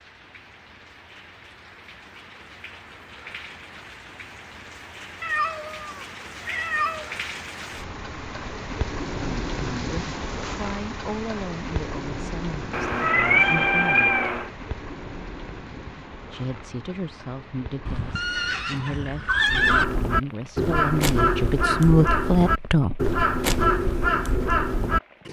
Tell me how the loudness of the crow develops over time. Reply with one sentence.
The volume of the crow stays about the same.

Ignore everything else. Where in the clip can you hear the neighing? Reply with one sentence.
The neighing can be heard from 17.9 to 19.9 s.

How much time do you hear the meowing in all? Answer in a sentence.
You can hear the meowing for 4 seconds altogether.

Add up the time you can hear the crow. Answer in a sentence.
The crow can be heard for 6 seconds in total.